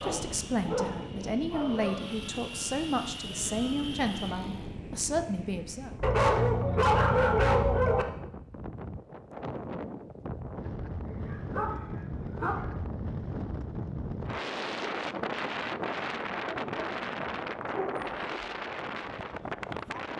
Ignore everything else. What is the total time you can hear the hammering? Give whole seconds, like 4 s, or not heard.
not heard.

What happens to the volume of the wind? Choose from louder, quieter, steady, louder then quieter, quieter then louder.
louder.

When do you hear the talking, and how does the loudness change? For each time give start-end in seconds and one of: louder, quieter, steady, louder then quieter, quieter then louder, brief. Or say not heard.
0.0-5.9 steady.